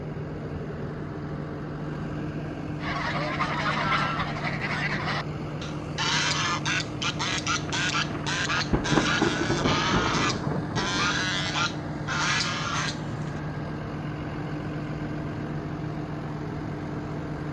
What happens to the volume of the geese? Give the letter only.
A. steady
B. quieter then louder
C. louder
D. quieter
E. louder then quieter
A.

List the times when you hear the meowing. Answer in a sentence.
The meowing can't be heard in this clip.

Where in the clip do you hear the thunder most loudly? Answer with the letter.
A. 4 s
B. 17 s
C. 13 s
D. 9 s
D.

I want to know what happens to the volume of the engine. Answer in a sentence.
The volume of the engine stays about the same.